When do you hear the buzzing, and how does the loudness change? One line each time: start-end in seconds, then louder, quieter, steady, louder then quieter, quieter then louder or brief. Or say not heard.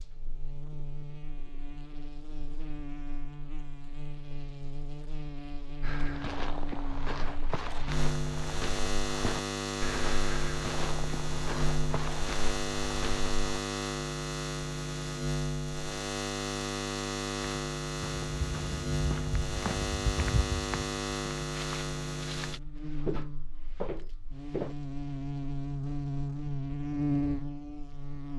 0.0-28.3 louder.